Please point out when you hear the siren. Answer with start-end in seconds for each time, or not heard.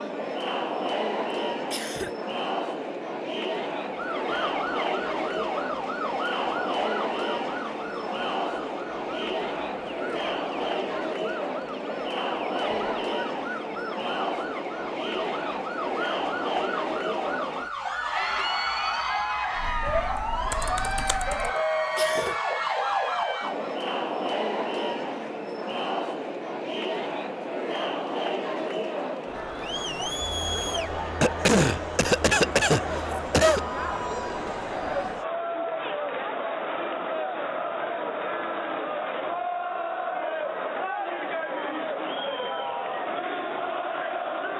3.8-23.8.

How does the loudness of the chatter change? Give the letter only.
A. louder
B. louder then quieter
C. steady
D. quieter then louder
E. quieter
C.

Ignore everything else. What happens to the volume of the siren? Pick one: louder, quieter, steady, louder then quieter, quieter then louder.
quieter then louder.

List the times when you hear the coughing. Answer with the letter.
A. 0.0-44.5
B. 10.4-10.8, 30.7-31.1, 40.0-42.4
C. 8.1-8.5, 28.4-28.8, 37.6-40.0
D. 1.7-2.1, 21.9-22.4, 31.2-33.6
D.